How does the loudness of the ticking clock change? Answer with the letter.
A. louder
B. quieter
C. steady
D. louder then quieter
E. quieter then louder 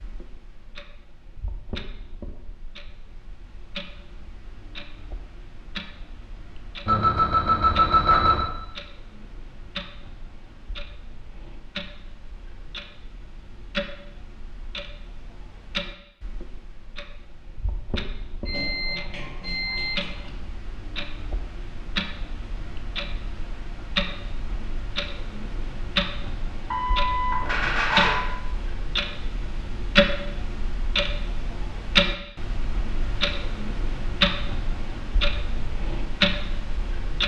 A.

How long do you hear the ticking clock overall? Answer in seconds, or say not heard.
37 s.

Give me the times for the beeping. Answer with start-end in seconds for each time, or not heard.
6.8-8.4, 18.4-20.3, 26.7-28.1.